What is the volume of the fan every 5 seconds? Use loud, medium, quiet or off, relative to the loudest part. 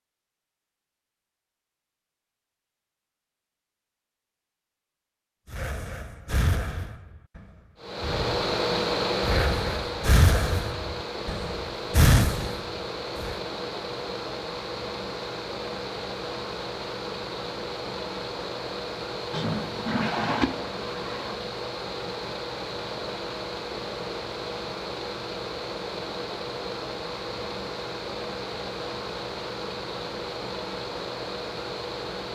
off, loud, medium, medium, medium, medium, medium.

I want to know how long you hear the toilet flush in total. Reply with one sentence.
The toilet flush can be heard for 2 seconds in total.